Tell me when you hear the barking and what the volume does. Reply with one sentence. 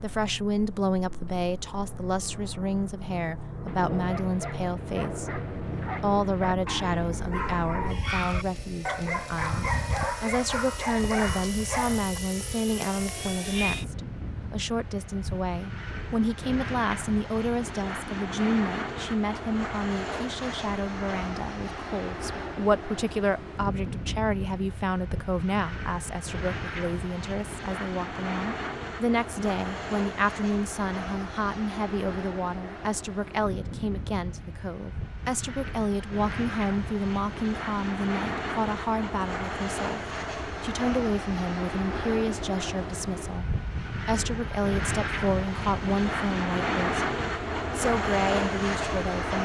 The barking can be heard from 3.4 to 12.2 s, getting louder.